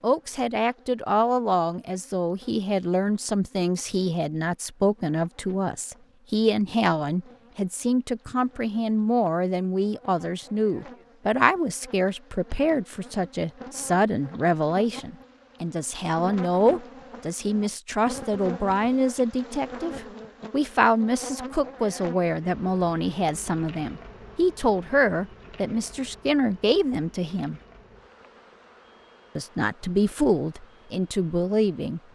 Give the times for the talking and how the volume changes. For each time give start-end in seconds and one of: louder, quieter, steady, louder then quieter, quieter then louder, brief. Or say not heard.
0.0-27.6 steady
29.4-32.0 brief.